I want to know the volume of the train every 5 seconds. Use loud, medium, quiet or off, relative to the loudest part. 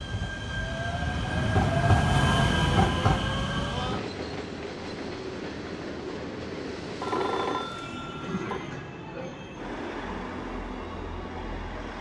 loud, medium, medium.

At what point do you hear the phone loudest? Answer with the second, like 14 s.
7 s.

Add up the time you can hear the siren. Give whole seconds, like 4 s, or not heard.
not heard.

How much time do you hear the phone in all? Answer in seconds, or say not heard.
2 s.